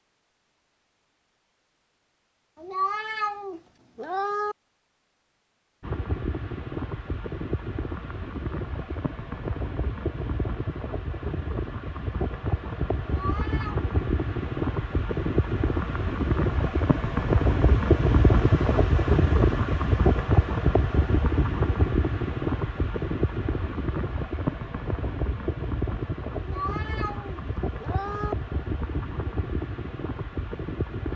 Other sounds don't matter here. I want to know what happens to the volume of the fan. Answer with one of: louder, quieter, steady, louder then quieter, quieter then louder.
louder then quieter.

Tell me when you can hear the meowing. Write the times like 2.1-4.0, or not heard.
2.6-4.5, 13.0-13.8, 26.4-28.4.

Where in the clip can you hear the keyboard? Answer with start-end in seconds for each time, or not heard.
not heard.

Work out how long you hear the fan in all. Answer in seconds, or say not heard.
25 s.